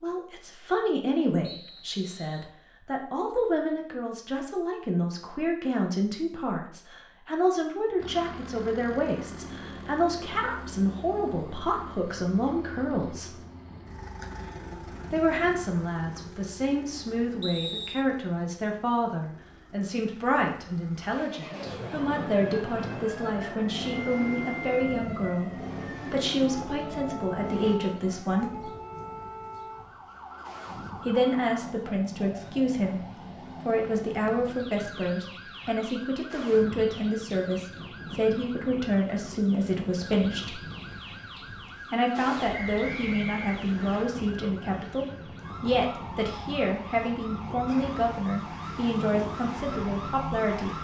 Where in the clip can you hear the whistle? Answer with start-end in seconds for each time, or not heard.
1.4-2.5, 17.4-18.1, 42.5-44.0.